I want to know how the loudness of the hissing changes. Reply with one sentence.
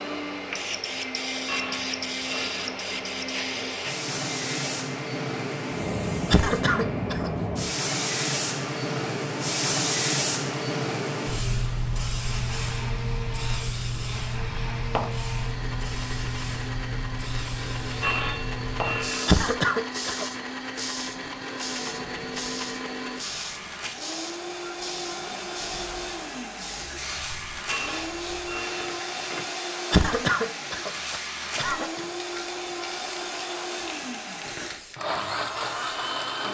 The volume of the hissing goes down.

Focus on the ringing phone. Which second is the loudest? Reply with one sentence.
The volume of the ringing phone peaks at 18 seconds.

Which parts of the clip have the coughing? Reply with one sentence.
The coughing can be heard from 6.2 to 7.3 s, from 19.2 to 20.2 s and from 29.9 to 32.0 s.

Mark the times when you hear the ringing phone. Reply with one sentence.
The ringing phone can be heard from 1.4 to 2.8 s, from 18.0 to 19.4 s and from 27.6 to 29.4 s.